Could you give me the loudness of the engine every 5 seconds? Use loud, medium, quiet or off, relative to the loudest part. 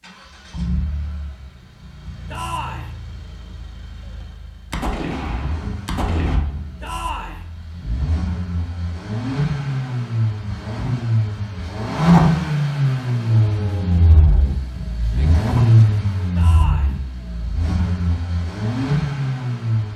quiet, medium, loud, loud.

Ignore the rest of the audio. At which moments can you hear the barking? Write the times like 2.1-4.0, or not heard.
not heard.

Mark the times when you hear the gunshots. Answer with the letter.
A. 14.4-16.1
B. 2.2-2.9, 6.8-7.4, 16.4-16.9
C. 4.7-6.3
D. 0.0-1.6
C.